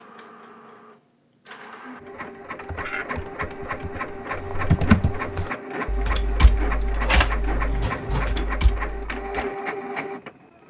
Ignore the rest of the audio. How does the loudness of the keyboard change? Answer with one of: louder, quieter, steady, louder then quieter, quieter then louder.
louder then quieter.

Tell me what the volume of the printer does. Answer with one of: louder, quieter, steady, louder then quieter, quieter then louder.
louder.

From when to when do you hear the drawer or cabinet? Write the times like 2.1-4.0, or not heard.
7.0-8.3.